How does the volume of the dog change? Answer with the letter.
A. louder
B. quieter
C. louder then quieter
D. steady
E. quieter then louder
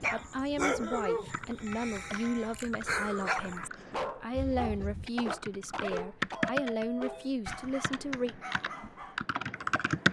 B.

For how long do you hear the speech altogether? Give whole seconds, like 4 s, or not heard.
8 s.